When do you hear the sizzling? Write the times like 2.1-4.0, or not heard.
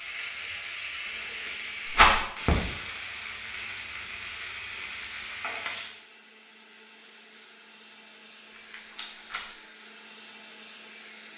0.0-6.0.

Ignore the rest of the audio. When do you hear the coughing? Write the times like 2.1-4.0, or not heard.
not heard.